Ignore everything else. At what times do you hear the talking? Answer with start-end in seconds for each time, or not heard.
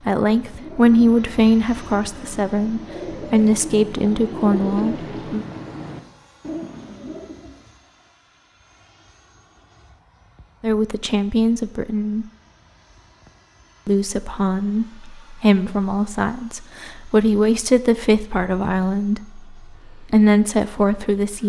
0.1-5.5, 10.6-12.2, 13.8-21.4.